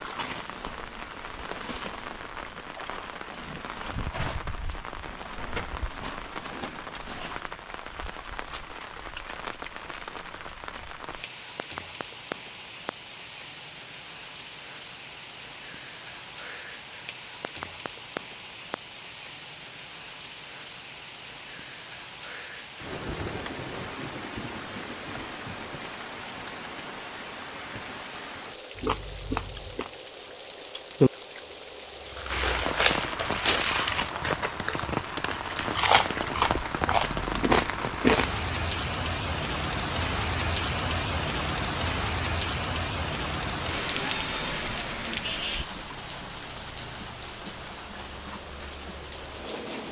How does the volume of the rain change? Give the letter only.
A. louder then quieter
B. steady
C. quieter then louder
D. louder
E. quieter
D.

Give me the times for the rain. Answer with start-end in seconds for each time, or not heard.
0.0-49.8.